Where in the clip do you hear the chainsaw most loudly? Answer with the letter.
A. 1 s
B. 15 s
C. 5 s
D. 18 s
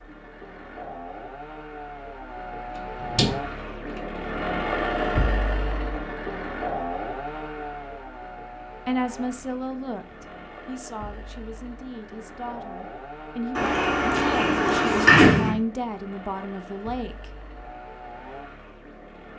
C.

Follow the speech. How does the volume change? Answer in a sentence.
The loudness of the speech goes down, then up.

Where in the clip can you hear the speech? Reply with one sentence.
The speech can be heard from 8.8 to 17.2 s.